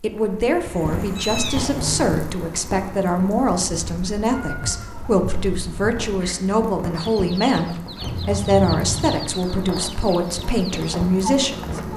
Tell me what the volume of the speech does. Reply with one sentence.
The loudness of the speech stays about the same.